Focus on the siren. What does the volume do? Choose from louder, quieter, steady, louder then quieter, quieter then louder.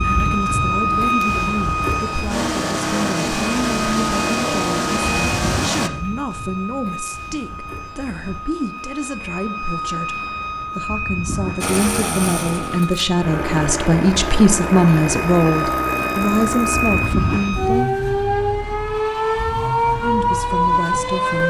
quieter then louder.